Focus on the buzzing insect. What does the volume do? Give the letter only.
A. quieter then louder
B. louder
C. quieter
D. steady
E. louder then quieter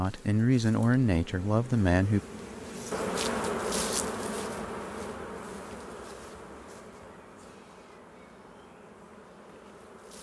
E.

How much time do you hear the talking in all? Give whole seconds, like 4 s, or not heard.
2 s.